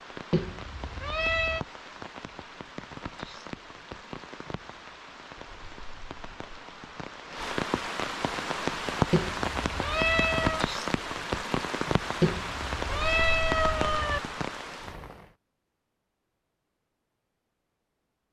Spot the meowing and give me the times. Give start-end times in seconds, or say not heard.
0.3-1.6, 9.1-10.7, 12.2-14.2.